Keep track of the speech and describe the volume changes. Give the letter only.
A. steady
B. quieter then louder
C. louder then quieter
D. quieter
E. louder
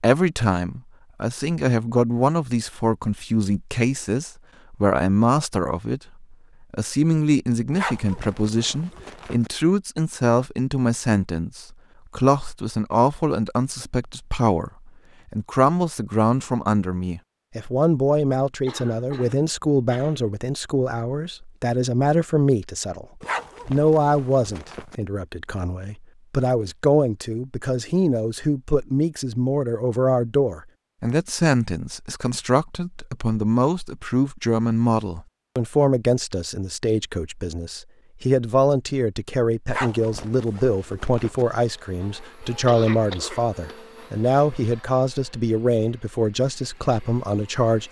A.